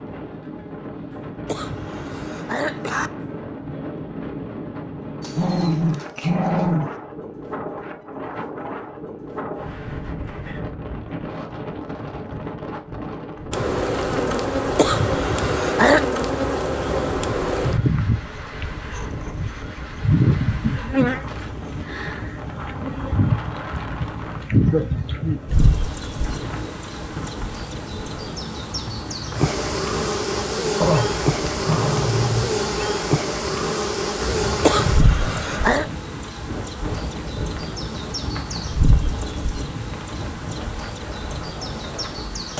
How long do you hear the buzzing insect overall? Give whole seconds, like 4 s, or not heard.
29 s.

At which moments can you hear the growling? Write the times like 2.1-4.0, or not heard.
5.2-6.9, 30.8-32.5.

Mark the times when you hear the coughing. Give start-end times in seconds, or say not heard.
1.4-3.1, 14.8-16.1, 34.6-35.9.